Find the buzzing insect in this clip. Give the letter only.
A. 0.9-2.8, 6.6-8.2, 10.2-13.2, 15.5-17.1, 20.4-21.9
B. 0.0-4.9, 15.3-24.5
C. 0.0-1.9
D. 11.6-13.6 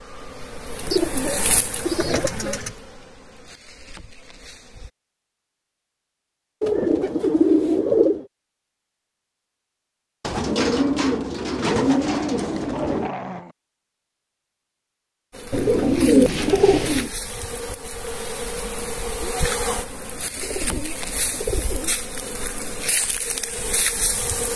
B.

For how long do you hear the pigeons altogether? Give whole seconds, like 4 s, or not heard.
10 s.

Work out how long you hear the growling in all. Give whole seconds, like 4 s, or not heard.
2 s.